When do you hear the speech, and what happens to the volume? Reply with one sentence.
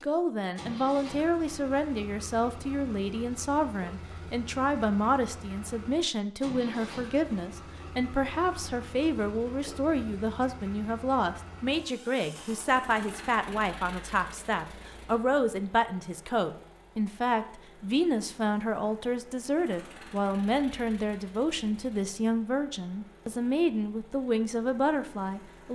The speech can be heard from 0.0 to 25.7 s, at a steady volume.